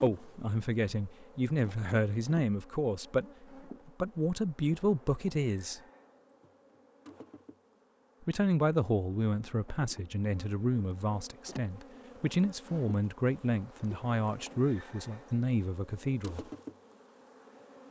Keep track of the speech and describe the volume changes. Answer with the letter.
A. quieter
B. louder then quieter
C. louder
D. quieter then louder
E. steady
E.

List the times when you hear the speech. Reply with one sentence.
The speech can be heard from 0.0 to 5.8 s and from 8.2 to 16.4 s.